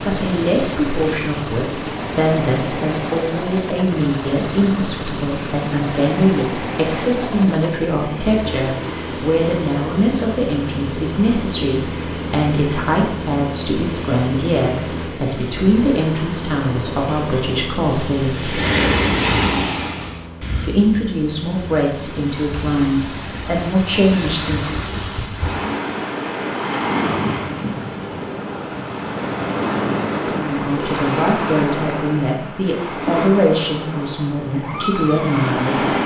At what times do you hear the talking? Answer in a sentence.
You can hear the talking from 0.1 to 18.6 s, from 20.6 to 24.8 s and from 30.4 to 36.0 s.